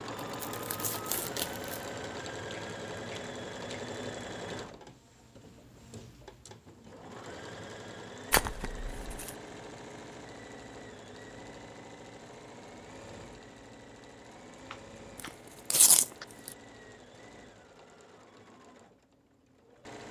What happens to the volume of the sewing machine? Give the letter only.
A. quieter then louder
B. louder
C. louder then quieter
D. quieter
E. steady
D.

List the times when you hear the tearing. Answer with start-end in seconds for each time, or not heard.
0.4-1.9, 8.3-9.3, 15.2-16.5.